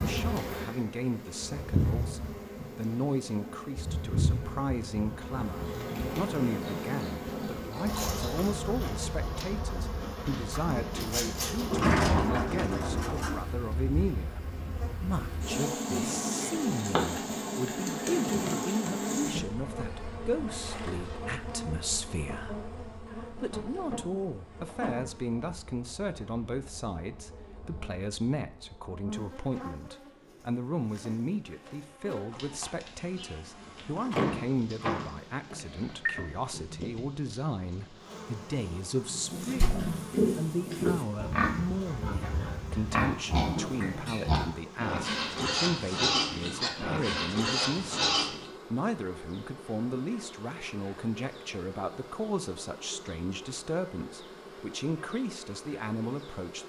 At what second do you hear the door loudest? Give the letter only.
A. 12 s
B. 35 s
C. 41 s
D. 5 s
A.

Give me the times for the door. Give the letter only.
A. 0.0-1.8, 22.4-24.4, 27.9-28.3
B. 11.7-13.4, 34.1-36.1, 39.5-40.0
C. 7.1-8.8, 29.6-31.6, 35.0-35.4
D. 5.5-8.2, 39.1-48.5
B.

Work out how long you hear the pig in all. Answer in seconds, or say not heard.
12 s.